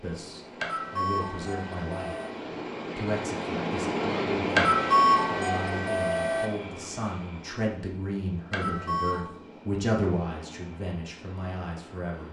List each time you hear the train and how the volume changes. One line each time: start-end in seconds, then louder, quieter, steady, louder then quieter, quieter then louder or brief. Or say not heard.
0.0-12.2 louder then quieter.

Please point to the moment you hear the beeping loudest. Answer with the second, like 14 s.
5 s.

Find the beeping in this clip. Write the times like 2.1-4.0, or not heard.
0.6-2.3, 4.5-6.5, 8.5-9.2.